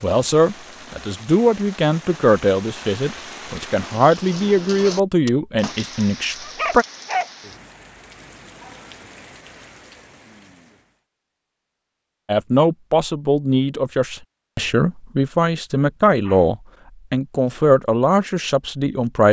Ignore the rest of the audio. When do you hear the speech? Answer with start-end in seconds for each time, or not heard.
0.0-6.8, 12.2-19.2.